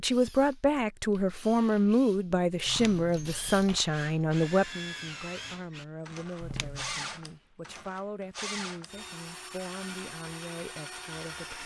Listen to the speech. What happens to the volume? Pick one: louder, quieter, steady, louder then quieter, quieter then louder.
quieter.